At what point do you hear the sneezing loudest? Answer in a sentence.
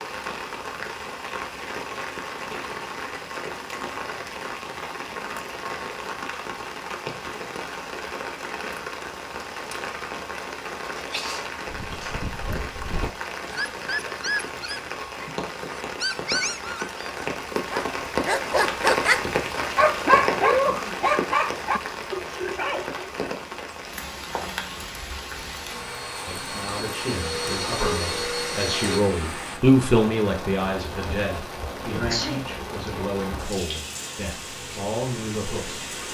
The loudest moment of the sneezing is at 32 seconds.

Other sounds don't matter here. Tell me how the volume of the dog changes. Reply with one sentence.
The volume of the dog goes up, then down.